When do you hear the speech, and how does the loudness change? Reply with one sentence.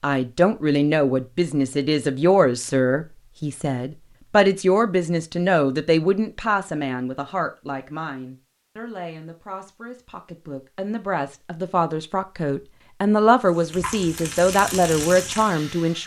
You can hear the speech from 0.0 to 16.0 s, getting quieter then louder.